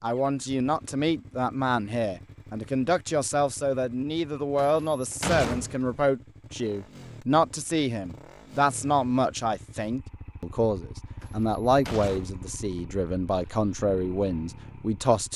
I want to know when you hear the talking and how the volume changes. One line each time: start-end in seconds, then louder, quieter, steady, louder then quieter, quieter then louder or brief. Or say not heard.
0.0-15.3 steady.